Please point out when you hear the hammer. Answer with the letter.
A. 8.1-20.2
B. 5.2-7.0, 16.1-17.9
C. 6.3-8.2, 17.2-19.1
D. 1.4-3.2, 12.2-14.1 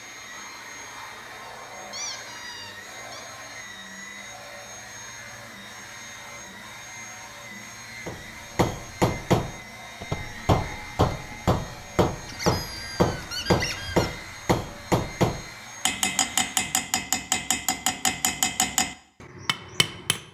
A.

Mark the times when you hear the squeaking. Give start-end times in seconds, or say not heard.
1.4-3.2, 12.2-14.1.